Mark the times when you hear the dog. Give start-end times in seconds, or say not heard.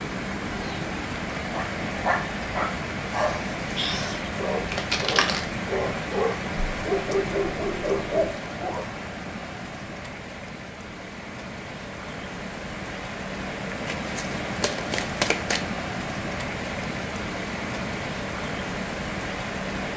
1.5-8.8.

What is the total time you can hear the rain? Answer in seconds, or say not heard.
20 s.